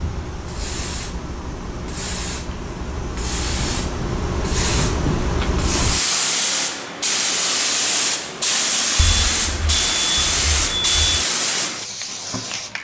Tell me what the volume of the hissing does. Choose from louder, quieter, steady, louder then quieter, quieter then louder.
louder.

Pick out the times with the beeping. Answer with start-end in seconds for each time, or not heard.
8.9-11.2.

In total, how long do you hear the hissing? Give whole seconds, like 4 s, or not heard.
13 s.